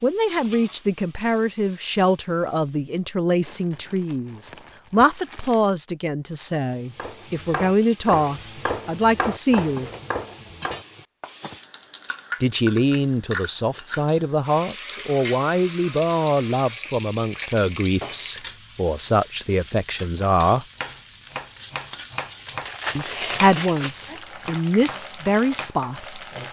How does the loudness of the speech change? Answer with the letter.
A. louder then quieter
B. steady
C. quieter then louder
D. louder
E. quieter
B.